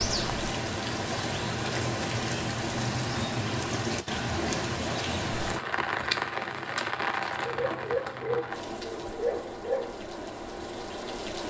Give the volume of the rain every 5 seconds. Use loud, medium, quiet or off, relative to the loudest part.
loud, loud, medium.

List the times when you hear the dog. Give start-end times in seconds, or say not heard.
7.3-9.9.